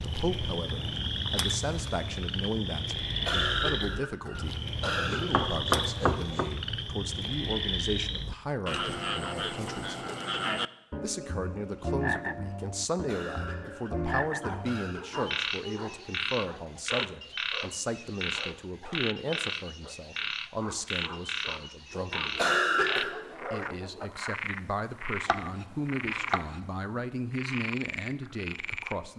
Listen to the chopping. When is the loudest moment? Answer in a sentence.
The loudest moment of the chopping is at 6 seconds.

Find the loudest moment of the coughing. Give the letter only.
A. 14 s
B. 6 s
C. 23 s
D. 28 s
C.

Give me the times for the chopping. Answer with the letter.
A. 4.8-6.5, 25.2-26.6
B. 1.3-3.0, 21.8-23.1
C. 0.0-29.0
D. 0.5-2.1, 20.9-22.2
A.